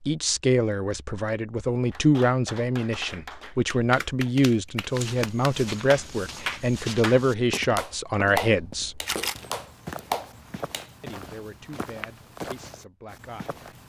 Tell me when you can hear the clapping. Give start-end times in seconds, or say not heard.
1.9-11.2.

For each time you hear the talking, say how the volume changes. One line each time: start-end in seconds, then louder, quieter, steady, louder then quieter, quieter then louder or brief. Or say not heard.
0.0-9.0 steady
11.0-13.6 brief.